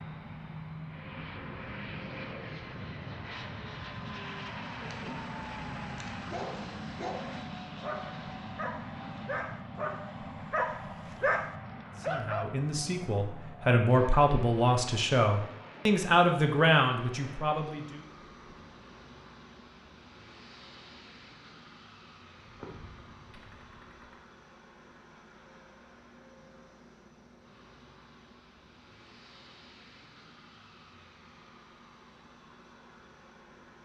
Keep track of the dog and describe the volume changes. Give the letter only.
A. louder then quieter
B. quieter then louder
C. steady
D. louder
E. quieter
D.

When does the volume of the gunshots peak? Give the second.
23 s.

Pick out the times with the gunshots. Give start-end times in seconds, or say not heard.
22.4-24.2.